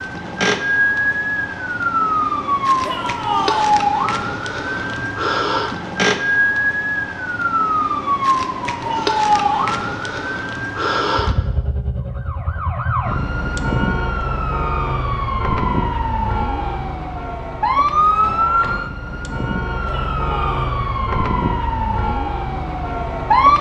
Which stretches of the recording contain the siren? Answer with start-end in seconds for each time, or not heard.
0.0-23.5.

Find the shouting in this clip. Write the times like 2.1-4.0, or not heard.
2.8-3.8, 8.8-9.7, 19.9-20.7.